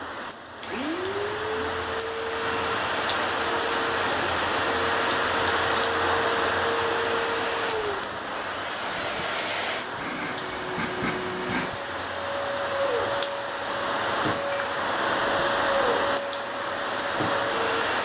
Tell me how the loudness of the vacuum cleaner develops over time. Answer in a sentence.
The loudness of the vacuum cleaner stays about the same.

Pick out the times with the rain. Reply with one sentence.
The rain can be heard from 0.0 to 18.0 s.